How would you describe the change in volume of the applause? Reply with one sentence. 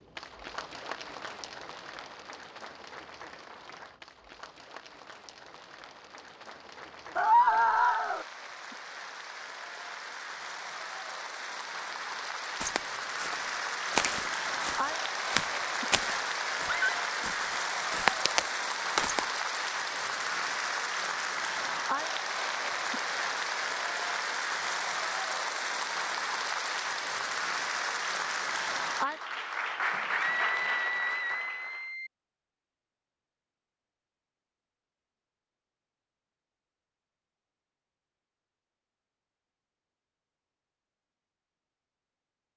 The loudness of the applause goes up.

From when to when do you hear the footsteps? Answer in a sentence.
The footsteps can be heard from 12.6 to 19.2 s.